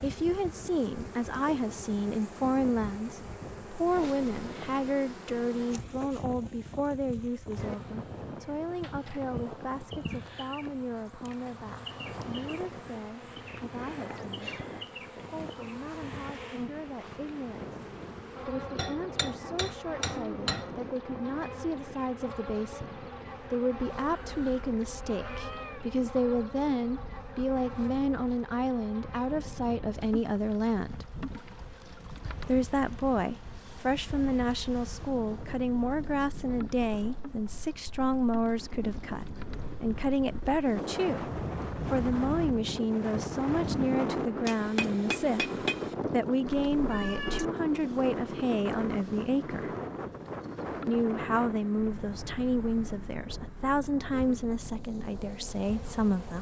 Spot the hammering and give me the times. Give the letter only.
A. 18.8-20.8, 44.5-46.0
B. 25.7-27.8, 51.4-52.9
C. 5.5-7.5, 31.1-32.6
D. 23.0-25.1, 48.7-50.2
A.